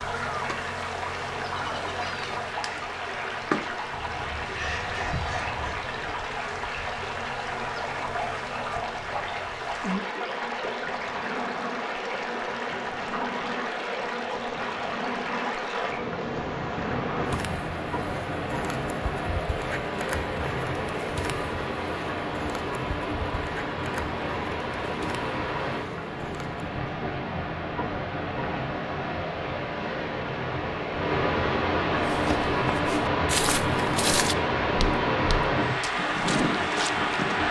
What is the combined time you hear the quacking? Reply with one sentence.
The quacking can be heard for 2 seconds in total.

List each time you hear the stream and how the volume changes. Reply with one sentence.
You can hear the stream from 0.0 to 37.4 s, getting louder.